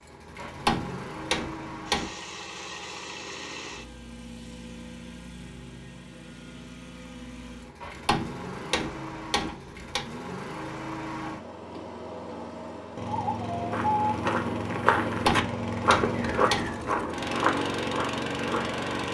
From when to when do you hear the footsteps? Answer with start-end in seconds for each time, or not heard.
13.6-18.8.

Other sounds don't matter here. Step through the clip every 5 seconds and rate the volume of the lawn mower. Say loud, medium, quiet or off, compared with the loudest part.
medium, medium, loud, loud.